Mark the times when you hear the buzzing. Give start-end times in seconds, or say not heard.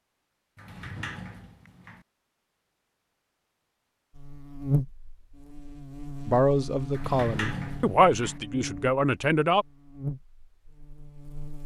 4.2-11.6.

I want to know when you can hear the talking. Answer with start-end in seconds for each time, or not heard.
6.2-9.7.